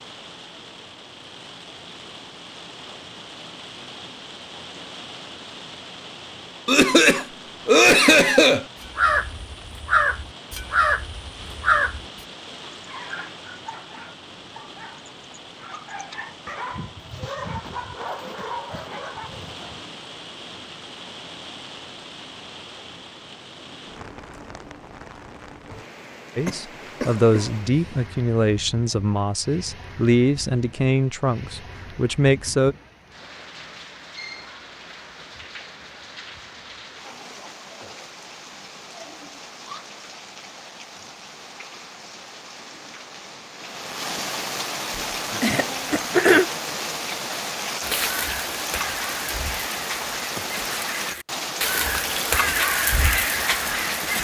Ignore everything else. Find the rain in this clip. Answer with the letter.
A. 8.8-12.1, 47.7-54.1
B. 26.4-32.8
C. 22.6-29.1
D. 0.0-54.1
D.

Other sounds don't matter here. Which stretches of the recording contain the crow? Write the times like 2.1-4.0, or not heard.
8.8-12.1, 47.7-54.1.